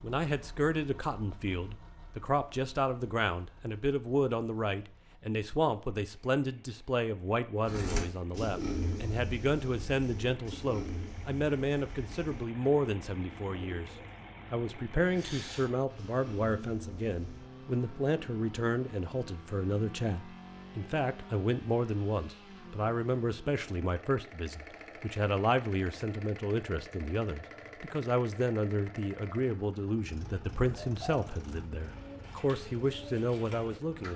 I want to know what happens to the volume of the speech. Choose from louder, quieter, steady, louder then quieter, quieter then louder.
steady.